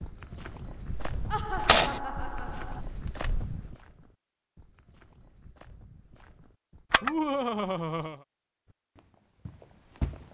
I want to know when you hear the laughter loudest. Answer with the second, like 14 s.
7 s.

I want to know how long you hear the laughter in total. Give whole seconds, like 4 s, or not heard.
3 s.